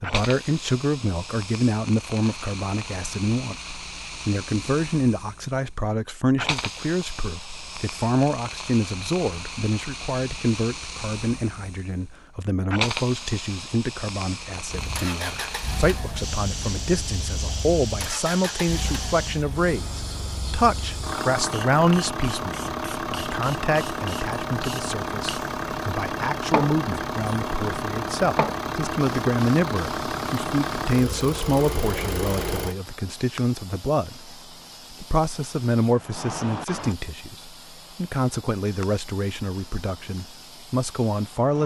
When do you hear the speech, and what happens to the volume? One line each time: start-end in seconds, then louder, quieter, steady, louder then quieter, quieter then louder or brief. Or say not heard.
0.0-41.6 steady.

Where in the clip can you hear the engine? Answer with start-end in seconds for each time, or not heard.
14.7-32.8.